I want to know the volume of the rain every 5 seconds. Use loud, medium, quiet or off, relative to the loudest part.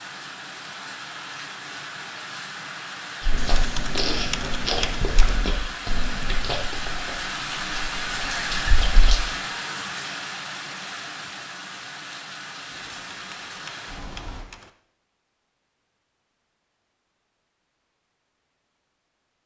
medium, loud, medium, off.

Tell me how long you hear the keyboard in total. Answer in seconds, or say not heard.
4 s.